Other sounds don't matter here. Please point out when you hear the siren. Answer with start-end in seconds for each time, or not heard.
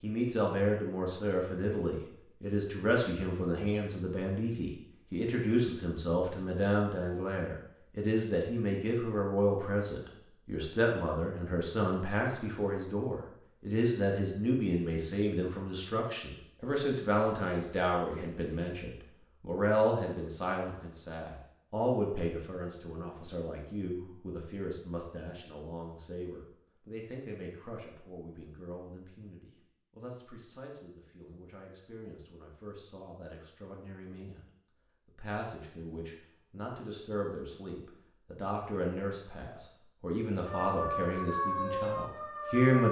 40.5-42.8.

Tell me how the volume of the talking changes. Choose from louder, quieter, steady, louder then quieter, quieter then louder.
quieter then louder.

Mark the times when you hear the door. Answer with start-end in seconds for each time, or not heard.
not heard.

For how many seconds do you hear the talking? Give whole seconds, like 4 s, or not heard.
42 s.